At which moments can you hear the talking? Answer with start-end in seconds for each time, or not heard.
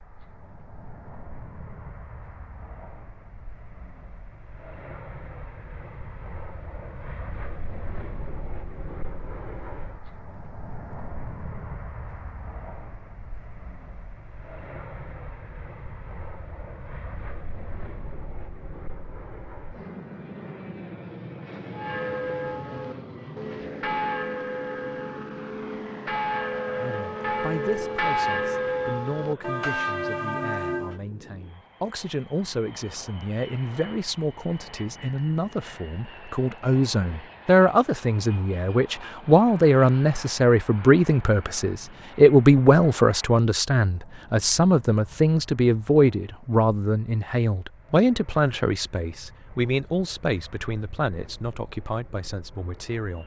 26.8-53.2.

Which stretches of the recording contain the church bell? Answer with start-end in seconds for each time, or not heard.
21.7-31.0.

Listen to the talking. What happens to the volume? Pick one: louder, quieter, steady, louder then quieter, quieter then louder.
louder then quieter.